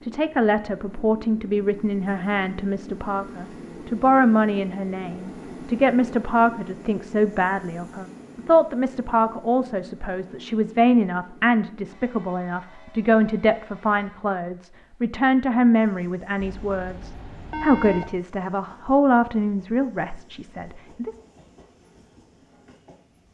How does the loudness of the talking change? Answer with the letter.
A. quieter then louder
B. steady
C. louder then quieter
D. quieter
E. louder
B.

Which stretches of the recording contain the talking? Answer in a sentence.
The talking can be heard from 0.0 to 21.1 s.